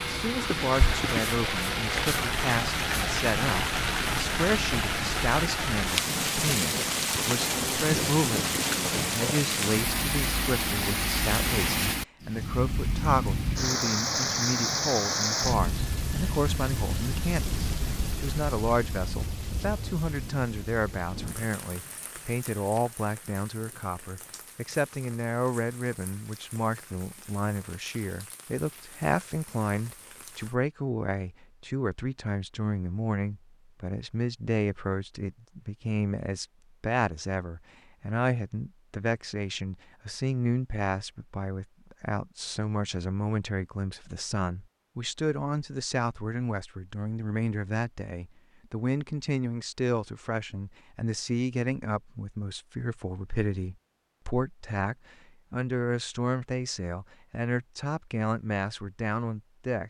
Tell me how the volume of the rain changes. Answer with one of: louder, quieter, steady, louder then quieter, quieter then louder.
quieter.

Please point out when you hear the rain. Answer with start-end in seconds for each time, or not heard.
0.0-30.6.